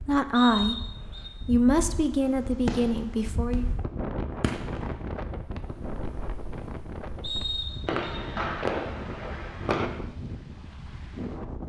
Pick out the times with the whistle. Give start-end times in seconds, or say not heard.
0.3-1.3, 7.2-8.1.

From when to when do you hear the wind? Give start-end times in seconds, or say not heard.
0.0-11.6.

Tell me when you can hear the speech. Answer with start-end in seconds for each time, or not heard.
0.1-3.6.